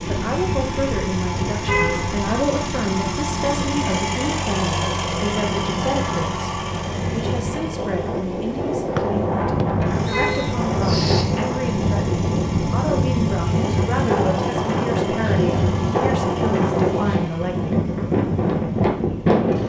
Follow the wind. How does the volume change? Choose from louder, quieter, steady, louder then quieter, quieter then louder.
louder.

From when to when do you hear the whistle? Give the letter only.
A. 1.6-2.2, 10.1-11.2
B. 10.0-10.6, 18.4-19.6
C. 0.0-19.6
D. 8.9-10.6
D.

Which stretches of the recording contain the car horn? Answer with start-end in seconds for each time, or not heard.
1.6-2.2, 10.1-11.2.